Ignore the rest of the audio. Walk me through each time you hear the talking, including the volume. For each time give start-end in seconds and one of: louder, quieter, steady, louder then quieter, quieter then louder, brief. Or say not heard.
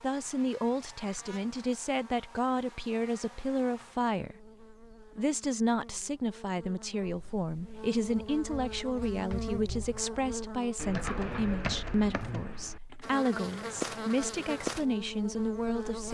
0.0-16.0 steady.